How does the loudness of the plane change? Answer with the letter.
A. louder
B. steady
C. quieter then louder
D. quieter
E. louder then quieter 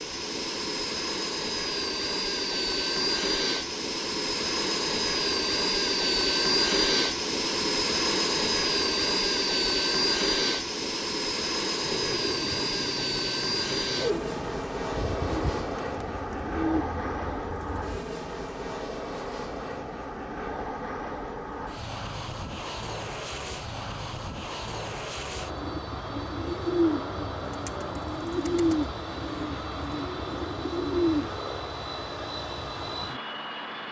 D.